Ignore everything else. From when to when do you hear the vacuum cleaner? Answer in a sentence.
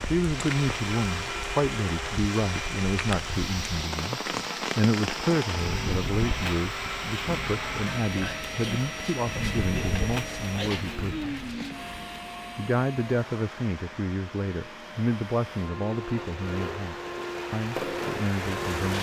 The vacuum cleaner can be heard from 0.0 to 18.9 s.